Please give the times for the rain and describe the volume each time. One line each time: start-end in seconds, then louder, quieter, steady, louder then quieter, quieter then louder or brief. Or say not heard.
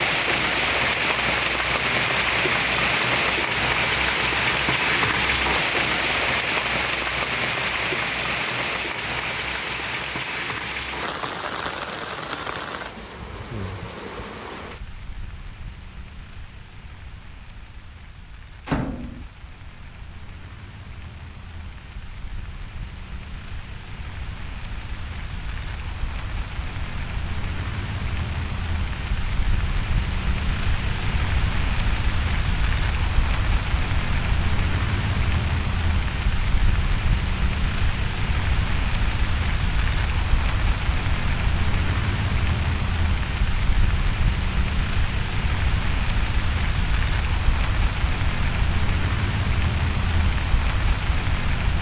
0.0-51.7 quieter then louder.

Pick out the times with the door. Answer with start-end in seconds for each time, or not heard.
18.6-19.2.